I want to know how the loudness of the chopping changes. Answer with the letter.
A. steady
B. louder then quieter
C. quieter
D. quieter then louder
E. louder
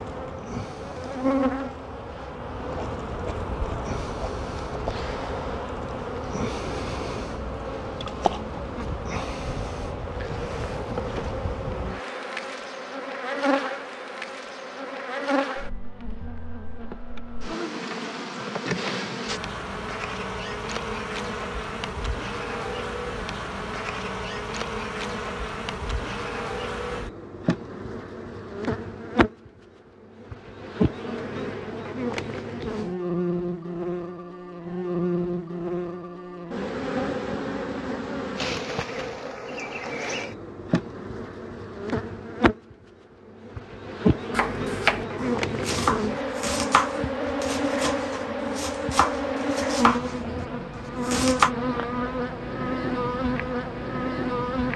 D.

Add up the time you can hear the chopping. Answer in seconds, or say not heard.
7 s.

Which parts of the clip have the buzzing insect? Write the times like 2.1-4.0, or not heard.
0.0-54.7.